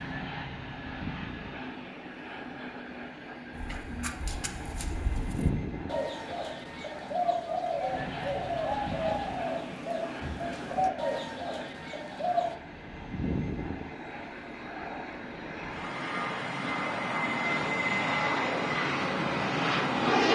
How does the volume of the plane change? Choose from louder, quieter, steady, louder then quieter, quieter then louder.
louder.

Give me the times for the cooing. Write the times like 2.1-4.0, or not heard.
3.5-12.6.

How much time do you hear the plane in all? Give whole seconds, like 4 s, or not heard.
20 s.